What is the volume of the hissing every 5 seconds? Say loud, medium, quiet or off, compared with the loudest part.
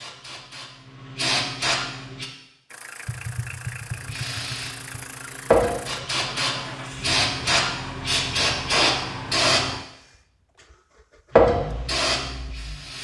medium, loud, loud.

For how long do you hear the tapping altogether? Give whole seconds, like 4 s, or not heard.
2 s.